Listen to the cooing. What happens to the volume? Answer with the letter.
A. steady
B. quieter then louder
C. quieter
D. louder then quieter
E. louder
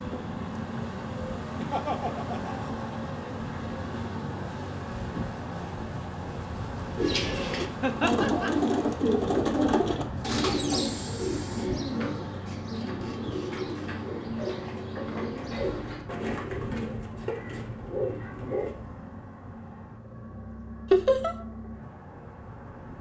C.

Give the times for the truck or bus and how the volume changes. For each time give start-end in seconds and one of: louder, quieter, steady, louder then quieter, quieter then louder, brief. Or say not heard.
0.0-22.9 quieter.